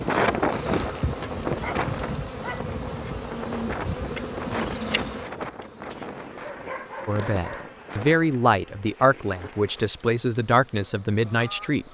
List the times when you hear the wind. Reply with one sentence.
The wind can be heard from 0.0 to 8.2 s.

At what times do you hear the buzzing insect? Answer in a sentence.
You can hear the buzzing insect from 0.0 to 11.8 s.